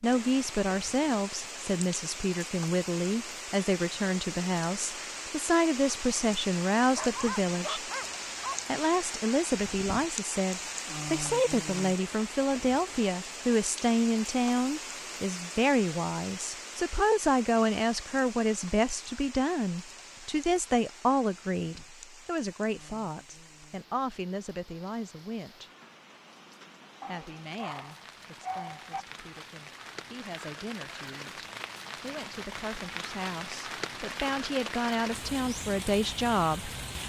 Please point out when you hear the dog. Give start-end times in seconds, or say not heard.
7.0-8.7, 27.0-29.1.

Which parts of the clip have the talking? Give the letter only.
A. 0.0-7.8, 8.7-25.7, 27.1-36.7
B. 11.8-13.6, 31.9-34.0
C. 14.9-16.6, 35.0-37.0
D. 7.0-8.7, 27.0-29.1
A.